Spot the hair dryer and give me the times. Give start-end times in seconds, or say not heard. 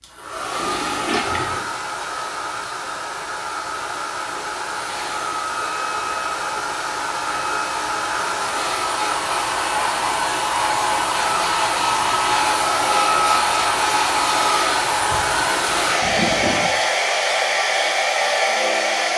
0.0-19.1.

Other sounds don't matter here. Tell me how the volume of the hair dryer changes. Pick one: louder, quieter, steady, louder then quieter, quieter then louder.
louder.